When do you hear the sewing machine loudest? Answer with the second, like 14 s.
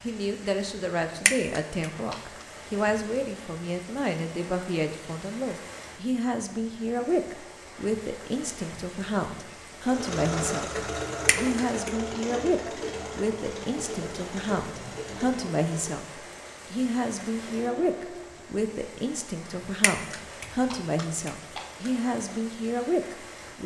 11 s.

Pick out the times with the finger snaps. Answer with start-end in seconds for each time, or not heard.
1.2-2.2, 11.2-12.2, 19.8-21.9.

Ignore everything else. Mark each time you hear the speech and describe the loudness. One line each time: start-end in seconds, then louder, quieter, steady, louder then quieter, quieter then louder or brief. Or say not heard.
0.0-23.6 steady.